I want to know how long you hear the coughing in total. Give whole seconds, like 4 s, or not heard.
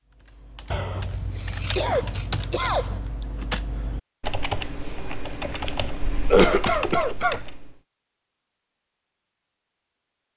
3 s.